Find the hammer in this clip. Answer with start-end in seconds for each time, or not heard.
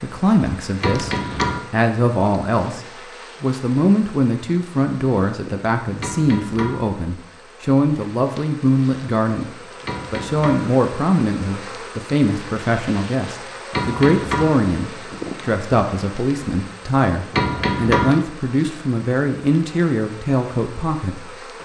0.8-1.6, 6.0-6.8, 9.8-10.7, 13.7-14.5, 17.3-18.1.